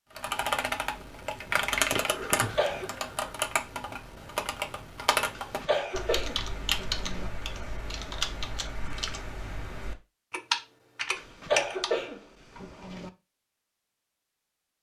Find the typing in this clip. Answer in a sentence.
You can hear the typing from 0.1 to 11.9 s.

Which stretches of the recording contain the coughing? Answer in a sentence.
You can hear the coughing from 2.3 to 2.9 s, from 5.3 to 7.3 s and from 11.2 to 13.1 s.